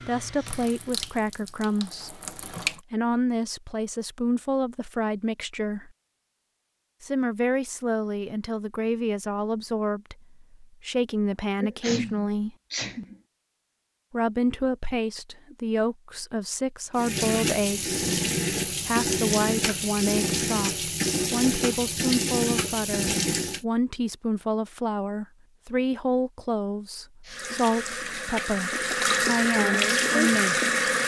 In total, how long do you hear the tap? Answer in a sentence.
You can hear the tap for 13 seconds altogether.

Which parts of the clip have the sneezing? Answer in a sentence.
The sneezing can be heard from 11.6 to 13.2 s.